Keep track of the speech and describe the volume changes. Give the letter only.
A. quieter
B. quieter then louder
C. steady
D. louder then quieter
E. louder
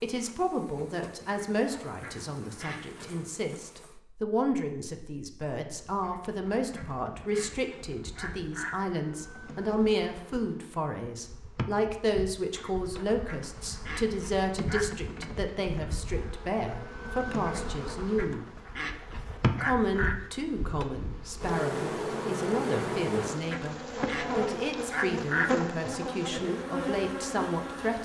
C.